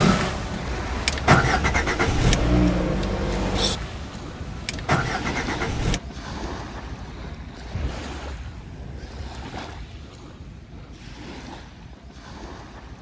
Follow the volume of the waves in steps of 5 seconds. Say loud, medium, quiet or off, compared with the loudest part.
loud, loud, medium.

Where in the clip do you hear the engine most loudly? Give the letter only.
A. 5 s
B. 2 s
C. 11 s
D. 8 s
B.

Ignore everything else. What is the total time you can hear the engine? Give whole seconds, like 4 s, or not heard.
6 s.